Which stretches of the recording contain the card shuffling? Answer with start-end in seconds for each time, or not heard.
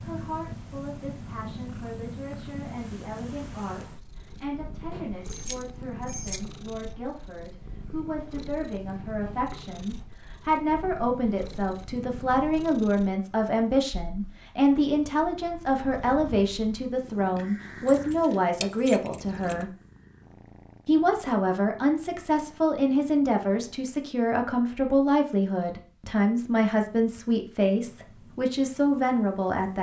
not heard.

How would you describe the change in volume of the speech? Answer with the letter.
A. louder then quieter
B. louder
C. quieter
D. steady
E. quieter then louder
B.